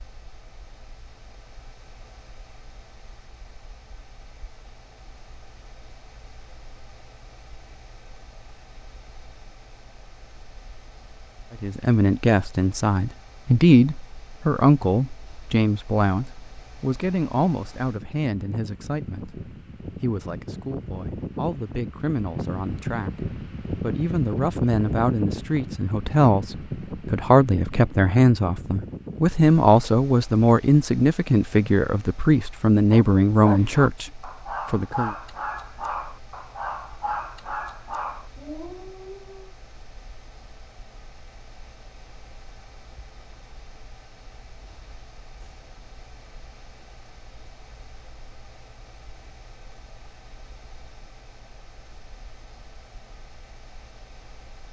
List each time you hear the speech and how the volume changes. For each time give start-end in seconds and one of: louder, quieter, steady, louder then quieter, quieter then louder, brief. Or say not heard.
11.6-35.1 quieter then louder.